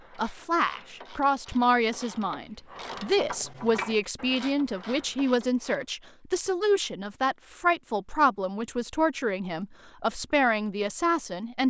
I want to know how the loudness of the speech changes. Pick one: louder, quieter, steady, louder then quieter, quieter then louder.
steady.